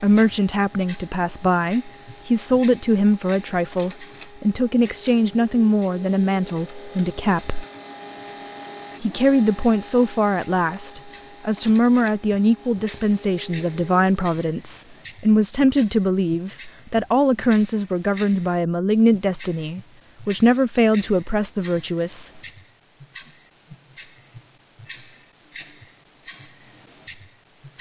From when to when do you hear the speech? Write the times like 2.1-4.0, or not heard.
0.0-7.7, 9.0-22.4.